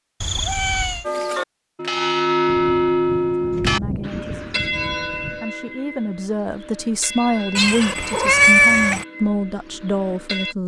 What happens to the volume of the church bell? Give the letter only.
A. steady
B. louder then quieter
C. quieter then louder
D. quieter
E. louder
D.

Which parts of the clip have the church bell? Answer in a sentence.
You can hear the church bell from 1.0 to 10.6 s.